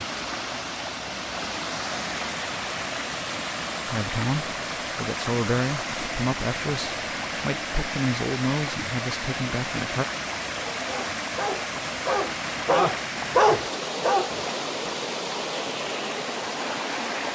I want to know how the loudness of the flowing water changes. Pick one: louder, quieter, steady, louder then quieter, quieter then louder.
steady.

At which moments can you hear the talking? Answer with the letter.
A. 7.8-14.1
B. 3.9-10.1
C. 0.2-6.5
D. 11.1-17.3
B.